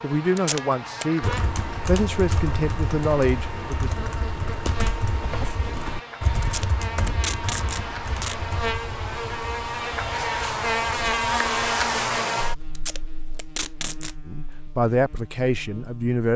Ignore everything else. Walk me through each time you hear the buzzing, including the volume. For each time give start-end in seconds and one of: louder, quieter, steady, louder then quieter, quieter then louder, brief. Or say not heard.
0.0-16.2 louder then quieter.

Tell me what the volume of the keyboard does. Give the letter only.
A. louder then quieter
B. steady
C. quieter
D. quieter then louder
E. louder
C.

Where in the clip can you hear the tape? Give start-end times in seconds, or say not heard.
0.3-1.1, 6.4-8.3, 12.8-14.2.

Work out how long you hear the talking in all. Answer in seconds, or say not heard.
6 s.